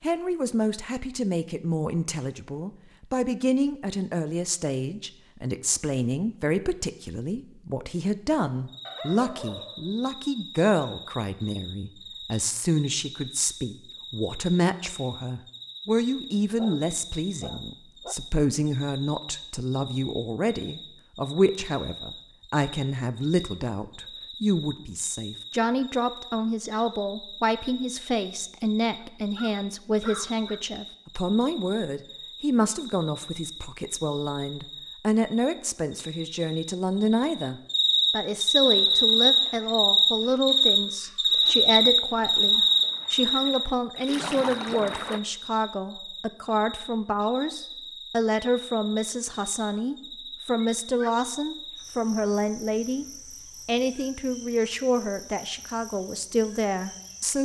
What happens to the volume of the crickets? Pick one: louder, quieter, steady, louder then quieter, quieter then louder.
louder then quieter.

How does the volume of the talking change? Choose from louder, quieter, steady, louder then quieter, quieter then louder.
steady.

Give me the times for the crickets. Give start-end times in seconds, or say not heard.
8.7-57.4.